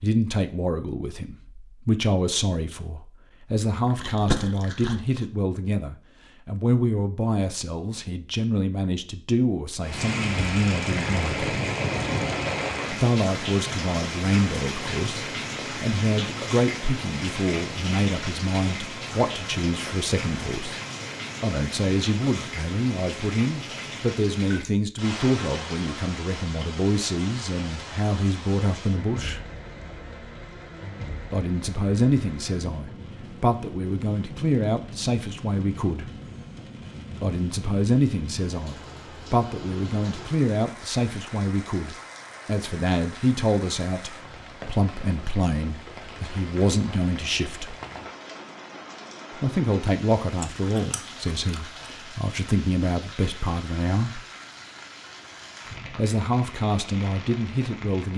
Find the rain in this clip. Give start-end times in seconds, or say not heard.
9.8-58.1.